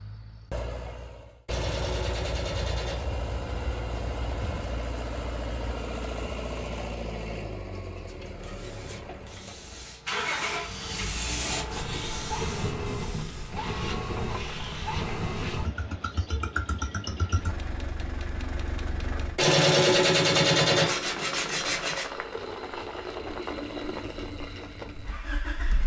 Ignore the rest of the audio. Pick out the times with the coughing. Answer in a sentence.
You can't hear the coughing here.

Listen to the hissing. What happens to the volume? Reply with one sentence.
The loudness of the hissing goes up, then down.